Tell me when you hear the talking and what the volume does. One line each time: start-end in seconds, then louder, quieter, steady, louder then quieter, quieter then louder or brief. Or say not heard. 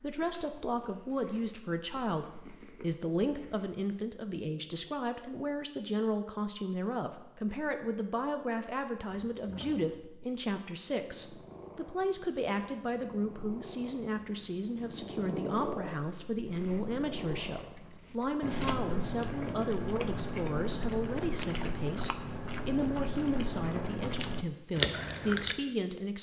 0.0-26.1 steady.